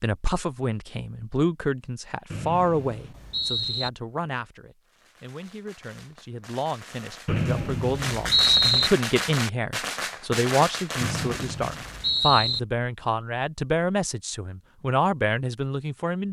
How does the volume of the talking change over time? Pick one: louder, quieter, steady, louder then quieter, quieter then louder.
quieter then louder.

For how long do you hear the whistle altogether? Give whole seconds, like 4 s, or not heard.
5 s.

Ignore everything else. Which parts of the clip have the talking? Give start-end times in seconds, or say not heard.
0.0-16.2.